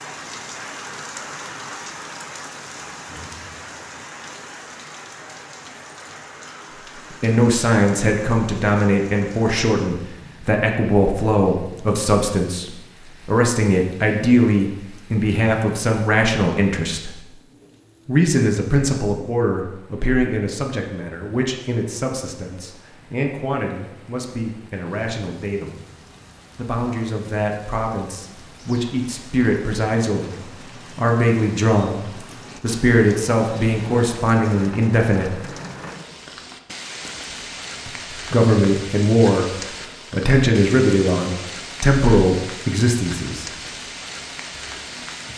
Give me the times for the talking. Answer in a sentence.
The talking can be heard from 7.1 to 17.2 s, from 18.1 to 25.9 s, from 26.6 to 35.4 s, from 37.9 to 39.5 s and from 40.1 to 43.5 s.